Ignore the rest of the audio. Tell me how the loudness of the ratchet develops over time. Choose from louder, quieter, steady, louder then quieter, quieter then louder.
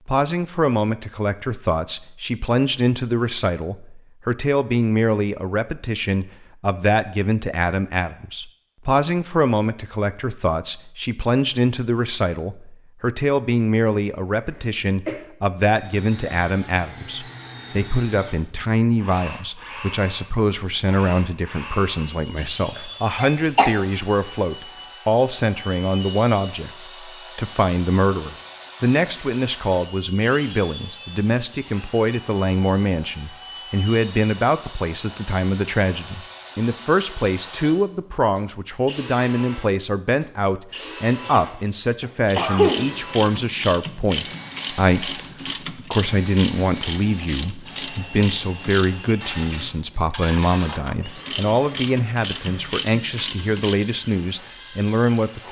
steady.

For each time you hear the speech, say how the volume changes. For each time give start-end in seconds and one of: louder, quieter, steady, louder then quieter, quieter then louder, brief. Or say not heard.
0.1-55.4 steady.